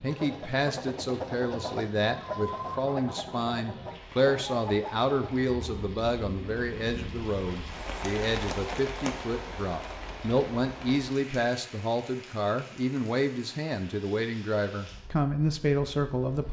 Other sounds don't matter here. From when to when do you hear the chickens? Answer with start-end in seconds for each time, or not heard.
0.1-5.9.